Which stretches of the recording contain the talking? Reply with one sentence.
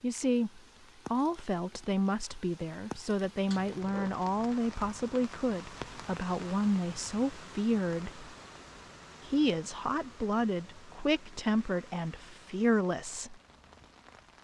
The talking can be heard from 0.0 to 8.3 s and from 9.2 to 13.3 s.